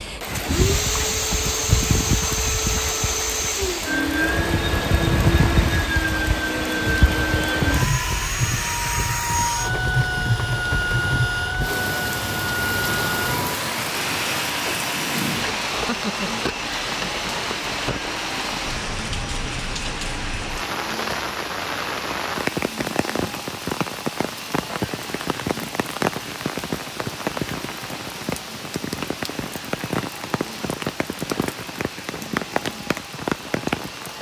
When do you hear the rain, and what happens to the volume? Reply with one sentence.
You can hear the rain from 0.0 to 34.1 s, at a steady volume.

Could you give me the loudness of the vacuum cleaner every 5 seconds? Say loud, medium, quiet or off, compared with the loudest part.
loud, loud, loud, medium, medium, quiet, quiet.